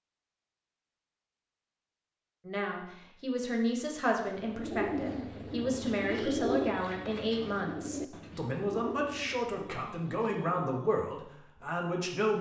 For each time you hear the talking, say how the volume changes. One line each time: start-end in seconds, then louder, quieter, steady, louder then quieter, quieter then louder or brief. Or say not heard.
2.5-12.3 steady.